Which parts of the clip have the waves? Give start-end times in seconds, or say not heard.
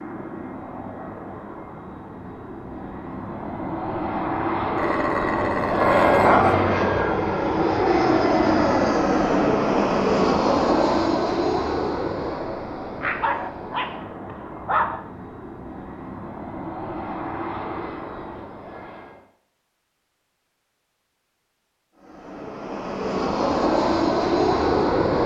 not heard.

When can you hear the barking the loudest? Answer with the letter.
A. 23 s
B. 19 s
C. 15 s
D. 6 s
D.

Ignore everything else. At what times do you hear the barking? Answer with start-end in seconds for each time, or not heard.
4.8-6.7, 12.9-14.9.